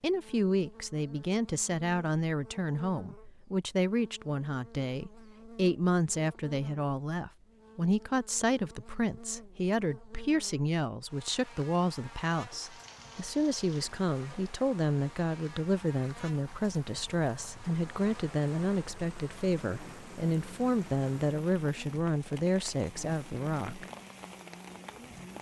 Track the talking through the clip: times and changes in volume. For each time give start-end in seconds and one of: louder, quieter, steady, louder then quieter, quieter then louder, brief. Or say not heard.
0.0-23.9 steady.